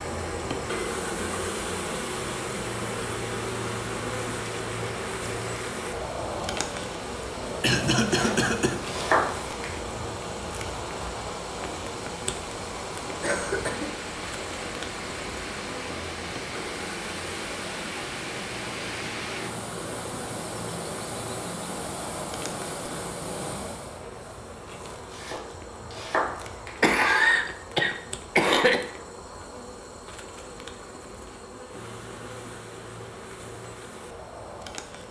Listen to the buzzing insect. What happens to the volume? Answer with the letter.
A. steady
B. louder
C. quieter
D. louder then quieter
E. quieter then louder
C.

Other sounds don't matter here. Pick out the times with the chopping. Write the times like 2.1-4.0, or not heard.
8.1-9.8, 25.1-26.8.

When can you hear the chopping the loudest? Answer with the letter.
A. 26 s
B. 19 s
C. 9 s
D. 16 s
C.